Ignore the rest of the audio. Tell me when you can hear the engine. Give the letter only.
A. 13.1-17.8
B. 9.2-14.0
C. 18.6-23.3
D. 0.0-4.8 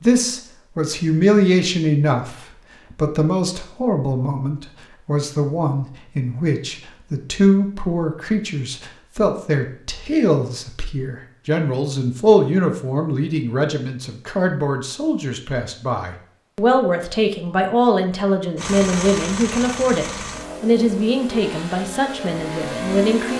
C.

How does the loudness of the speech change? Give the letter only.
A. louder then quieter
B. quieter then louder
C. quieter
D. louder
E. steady
E.